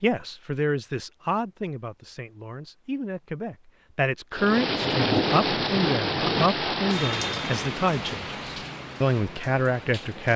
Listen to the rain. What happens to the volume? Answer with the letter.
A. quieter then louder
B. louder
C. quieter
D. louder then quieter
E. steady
C.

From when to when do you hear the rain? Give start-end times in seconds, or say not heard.
4.3-10.3.